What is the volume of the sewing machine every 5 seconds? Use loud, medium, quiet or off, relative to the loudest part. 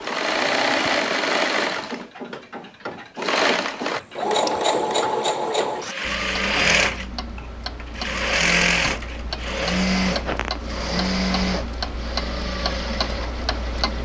loud, loud, medium.